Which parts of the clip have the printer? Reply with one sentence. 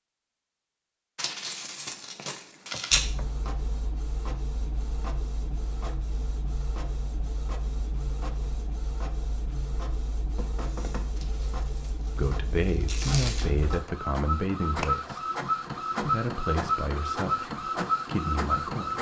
The printer can be heard from 2.9 to 18.9 s.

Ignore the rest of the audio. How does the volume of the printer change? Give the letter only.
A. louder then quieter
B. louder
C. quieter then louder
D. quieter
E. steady
B.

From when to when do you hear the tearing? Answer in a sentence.
The tearing can be heard from 1.1 to 3.0 s and from 11.2 to 13.4 s.